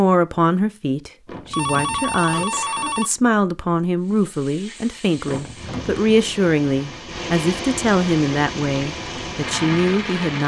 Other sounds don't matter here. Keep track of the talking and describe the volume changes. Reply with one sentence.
The loudness of the talking stays about the same.